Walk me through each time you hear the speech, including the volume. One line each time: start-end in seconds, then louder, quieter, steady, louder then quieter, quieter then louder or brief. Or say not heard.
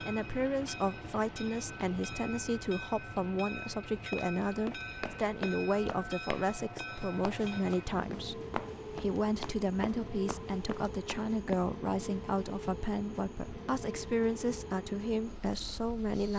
0.1-16.3 steady.